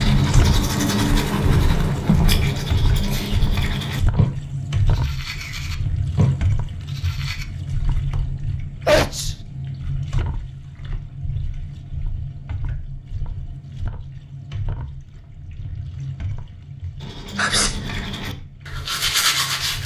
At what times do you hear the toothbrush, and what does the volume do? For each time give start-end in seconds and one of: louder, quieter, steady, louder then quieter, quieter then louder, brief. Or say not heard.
0.0-7.5 quieter then louder
17.0-19.8 brief.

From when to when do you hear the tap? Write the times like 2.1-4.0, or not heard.
0.0-19.8.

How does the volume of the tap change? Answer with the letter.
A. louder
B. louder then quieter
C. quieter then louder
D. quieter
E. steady
D.